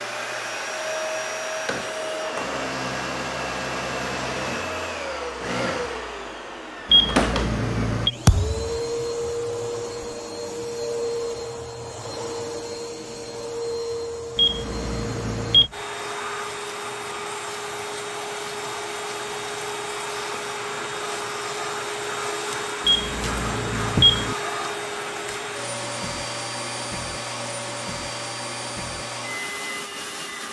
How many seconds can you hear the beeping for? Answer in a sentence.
The beeping can be heard for 4 seconds in total.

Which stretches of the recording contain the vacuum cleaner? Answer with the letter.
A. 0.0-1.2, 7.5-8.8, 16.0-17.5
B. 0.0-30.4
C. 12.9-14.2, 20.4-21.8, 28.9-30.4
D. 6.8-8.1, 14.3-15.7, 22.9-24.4
B.